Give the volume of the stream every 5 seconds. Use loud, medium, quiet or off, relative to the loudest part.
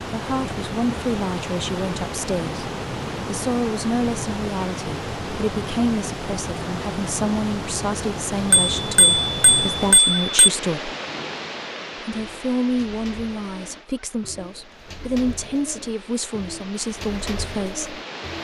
loud, loud, medium, medium.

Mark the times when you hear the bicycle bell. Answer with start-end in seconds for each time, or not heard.
8.5-10.5.